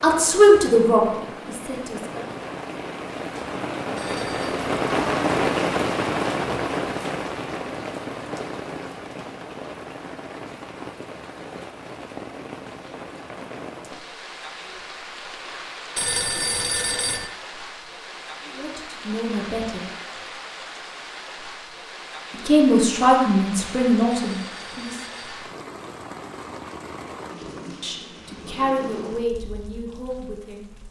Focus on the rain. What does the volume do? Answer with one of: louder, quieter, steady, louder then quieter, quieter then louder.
quieter.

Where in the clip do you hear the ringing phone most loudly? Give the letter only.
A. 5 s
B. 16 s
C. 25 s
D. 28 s
B.